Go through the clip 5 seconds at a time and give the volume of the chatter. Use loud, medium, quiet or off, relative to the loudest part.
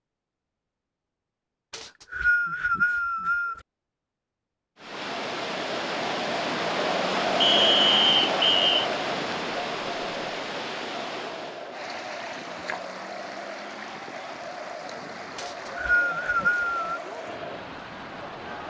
off, loud, medium, medium.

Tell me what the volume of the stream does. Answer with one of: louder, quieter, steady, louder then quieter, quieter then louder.
quieter.